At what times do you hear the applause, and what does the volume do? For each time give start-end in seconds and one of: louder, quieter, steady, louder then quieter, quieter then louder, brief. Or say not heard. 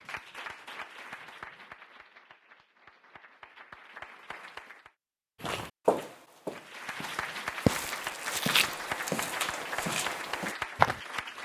0.0-4.9 quieter then louder
6.5-11.4 steady.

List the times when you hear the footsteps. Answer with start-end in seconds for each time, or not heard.
5.4-11.0.